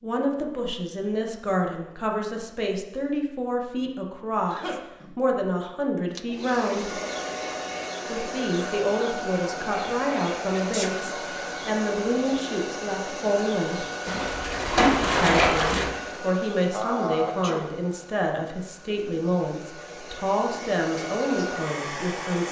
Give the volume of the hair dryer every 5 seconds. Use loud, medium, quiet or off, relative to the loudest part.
off, loud, loud, medium, loud.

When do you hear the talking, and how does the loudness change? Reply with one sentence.
You can hear the talking from 0.0 to 7.0 s, at a steady volume; from 8.1 to 13.8 s, at a steady volume; and from 15.2 to 22.4 s, at a steady volume.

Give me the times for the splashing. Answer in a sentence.
You can hear the splashing from 14.1 to 15.8 s.